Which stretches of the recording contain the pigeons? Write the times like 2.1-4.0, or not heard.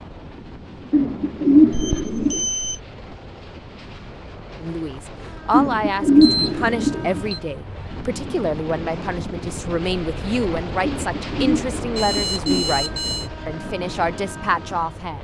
0.9-2.5, 5.5-7.2, 10.8-12.7.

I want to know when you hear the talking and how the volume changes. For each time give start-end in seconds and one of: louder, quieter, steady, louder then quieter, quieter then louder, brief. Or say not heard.
4.6-15.1 steady.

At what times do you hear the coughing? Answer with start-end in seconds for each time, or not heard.
not heard.